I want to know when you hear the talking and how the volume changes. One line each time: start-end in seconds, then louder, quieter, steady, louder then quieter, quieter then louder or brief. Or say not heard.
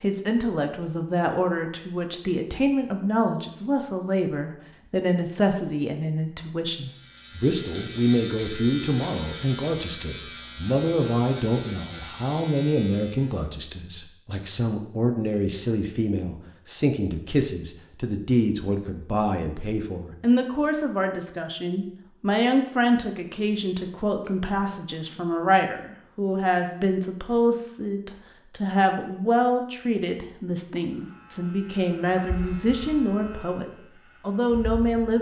0.0-35.1 steady.